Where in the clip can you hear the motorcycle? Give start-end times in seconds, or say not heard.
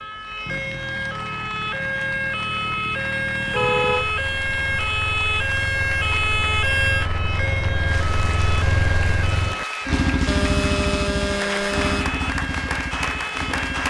0.0-13.8.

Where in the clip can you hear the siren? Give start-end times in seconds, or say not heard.
0.0-13.8.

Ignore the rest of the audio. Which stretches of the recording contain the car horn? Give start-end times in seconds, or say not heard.
3.5-4.8, 10.2-12.2.